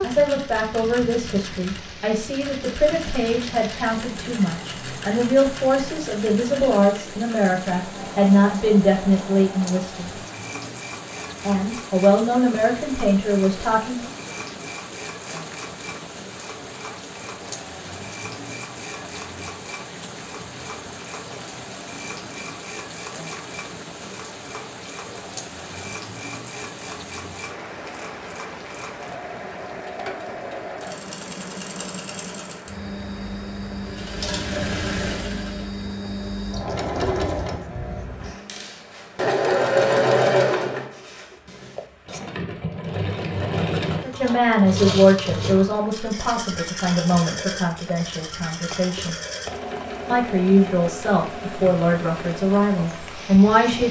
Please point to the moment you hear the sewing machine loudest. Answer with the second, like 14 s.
40 s.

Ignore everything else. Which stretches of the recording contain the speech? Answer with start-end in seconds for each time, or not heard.
0.0-10.1, 11.4-14.1, 44.0-49.1, 50.1-53.8.